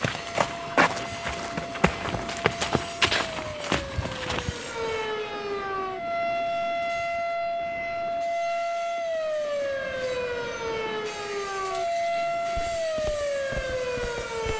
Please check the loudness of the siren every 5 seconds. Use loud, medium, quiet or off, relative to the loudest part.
medium, loud, loud.